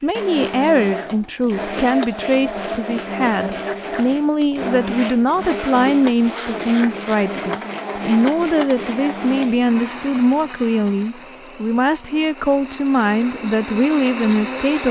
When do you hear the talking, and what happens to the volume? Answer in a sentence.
The talking can be heard from 0.0 to 14.8 s, at a steady volume.